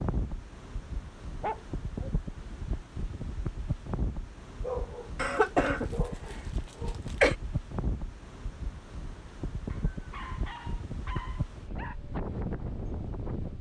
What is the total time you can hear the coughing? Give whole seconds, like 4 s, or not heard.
2 s.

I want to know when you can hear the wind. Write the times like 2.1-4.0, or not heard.
0.0-13.5.